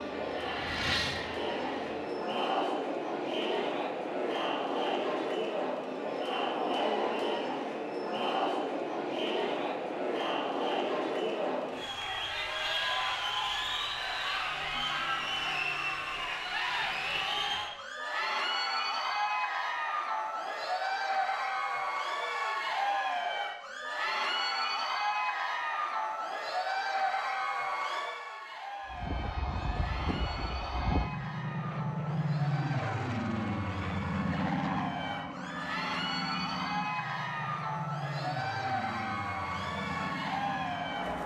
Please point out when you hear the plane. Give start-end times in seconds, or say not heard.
0.0-2.2, 28.9-41.2.